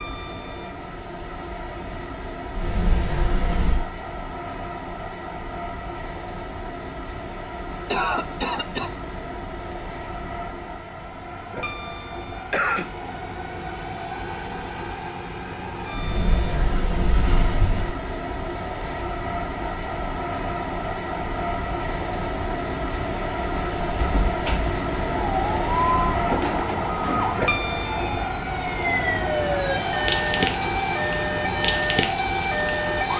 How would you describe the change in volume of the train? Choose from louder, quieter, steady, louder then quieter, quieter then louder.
louder.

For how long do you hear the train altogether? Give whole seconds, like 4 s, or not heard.
33 s.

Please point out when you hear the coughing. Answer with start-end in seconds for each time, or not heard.
7.9-8.9, 12.5-12.9, 26.2-27.4.